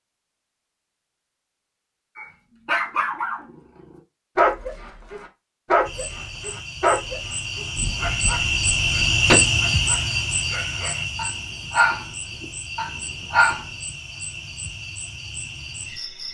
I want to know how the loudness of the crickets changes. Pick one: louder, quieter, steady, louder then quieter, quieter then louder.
louder then quieter.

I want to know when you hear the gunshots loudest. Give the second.
9 s.